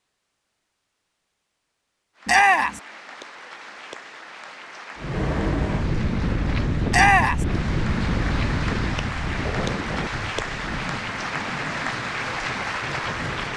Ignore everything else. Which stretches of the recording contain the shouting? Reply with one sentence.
You can hear the shouting from 2.2 to 2.8 s and from 6.9 to 7.5 s.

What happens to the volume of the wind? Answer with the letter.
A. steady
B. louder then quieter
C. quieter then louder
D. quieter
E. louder
D.